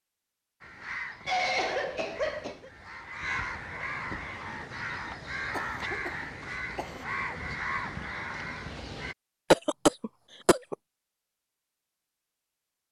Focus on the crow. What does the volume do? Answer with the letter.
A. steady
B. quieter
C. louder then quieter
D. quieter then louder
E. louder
E.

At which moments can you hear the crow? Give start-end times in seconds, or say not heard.
0.6-9.2.